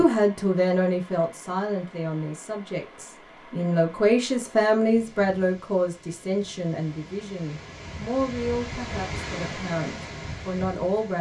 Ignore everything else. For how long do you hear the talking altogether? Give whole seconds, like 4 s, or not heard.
11 s.